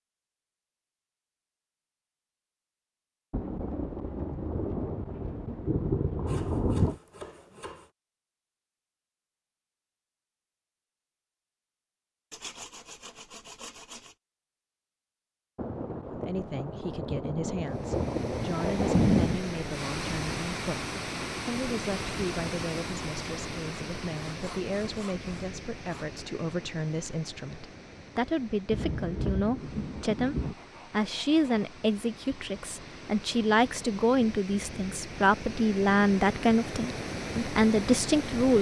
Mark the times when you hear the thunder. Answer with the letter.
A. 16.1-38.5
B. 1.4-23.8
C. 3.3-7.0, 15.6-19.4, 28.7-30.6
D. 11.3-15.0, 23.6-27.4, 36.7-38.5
C.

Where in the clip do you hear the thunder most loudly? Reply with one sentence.
The loudest moment of the thunder is at 19 seconds.